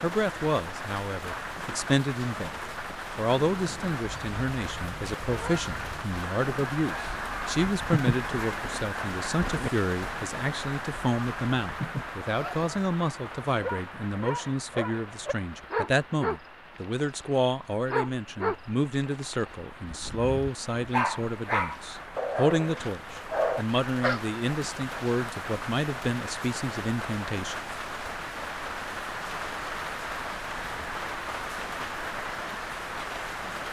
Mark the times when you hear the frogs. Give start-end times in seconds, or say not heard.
not heard.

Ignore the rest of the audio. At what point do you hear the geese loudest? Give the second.
8 s.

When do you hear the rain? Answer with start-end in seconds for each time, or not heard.
0.0-33.6.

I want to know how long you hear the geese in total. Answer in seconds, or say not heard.
9 s.